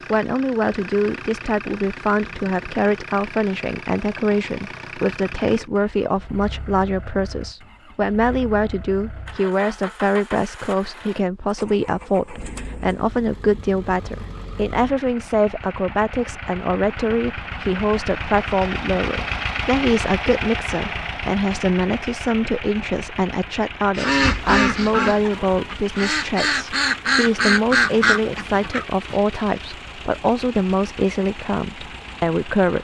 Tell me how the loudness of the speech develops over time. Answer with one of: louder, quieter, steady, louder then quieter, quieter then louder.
steady.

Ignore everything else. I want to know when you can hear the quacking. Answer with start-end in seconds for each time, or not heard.
23.9-29.1.